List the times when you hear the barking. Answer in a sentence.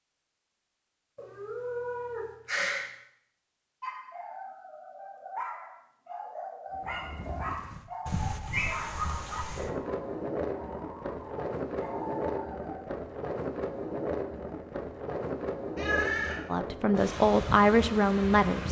You can hear the barking from 3.8 to 13.1 s.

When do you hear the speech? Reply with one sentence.
You can hear the speech from 16.4 to 18.6 s.